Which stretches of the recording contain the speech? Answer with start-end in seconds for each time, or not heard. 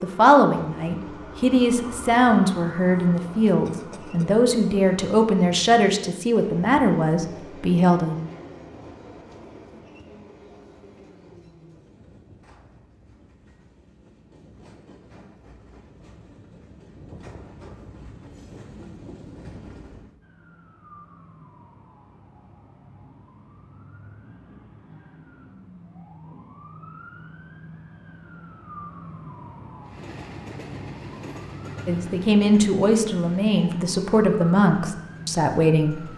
0.0-8.2, 31.9-36.1.